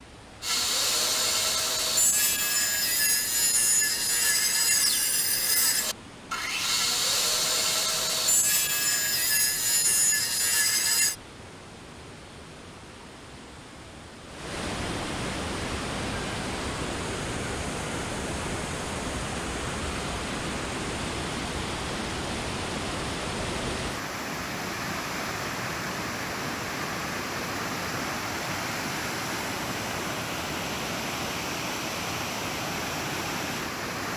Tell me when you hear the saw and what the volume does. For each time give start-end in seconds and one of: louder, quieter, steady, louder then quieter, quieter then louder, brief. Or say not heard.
0.4-11.2 steady.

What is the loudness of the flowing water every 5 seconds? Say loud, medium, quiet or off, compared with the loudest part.
quiet, quiet, medium, loud, loud, loud, loud.